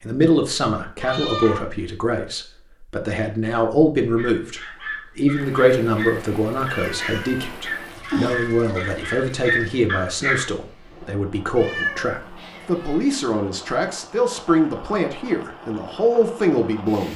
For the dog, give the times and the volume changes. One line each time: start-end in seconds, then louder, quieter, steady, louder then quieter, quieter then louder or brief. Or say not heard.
4.2-10.5 louder.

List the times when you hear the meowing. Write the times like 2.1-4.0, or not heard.
1.0-1.6, 6.7-9.3, 11.6-13.0.